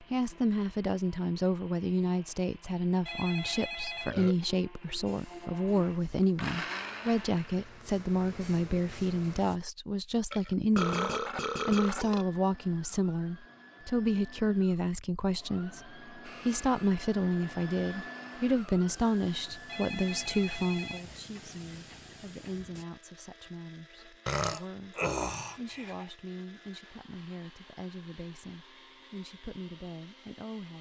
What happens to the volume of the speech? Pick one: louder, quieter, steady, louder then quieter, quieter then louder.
quieter.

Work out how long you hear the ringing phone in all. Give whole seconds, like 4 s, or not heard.
3 s.